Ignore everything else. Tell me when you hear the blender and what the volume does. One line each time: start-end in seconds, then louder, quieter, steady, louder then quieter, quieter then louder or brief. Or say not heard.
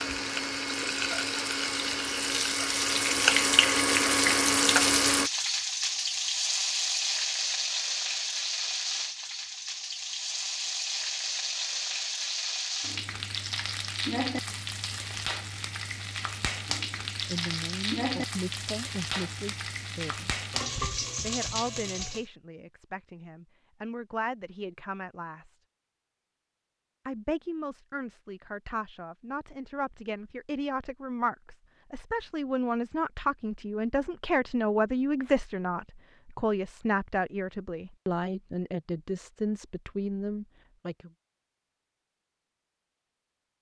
0.0-5.3 louder.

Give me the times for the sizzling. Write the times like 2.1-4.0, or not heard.
0.0-22.2.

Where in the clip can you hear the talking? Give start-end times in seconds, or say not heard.
17.2-20.4, 21.2-25.6, 27.1-41.1.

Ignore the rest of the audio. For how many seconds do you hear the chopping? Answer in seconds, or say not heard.
not heard.